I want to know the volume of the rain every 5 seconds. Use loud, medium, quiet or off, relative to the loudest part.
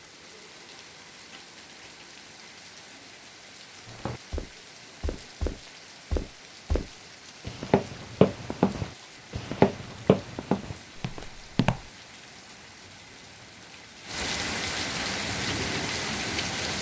quiet, quiet, medium, loud.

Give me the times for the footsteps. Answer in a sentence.
The footsteps can be heard from 3.9 to 11.9 s.